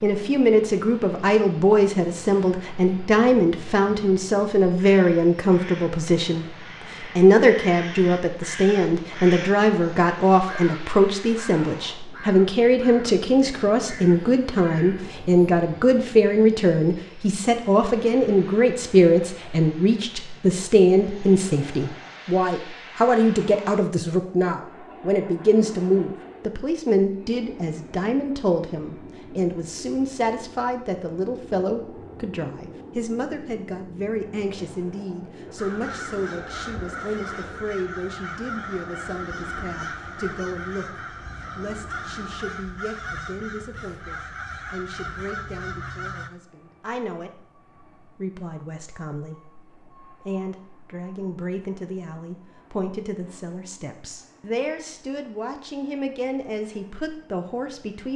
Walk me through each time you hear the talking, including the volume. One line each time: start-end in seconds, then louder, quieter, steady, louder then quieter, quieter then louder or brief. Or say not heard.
0.0-58.1 quieter.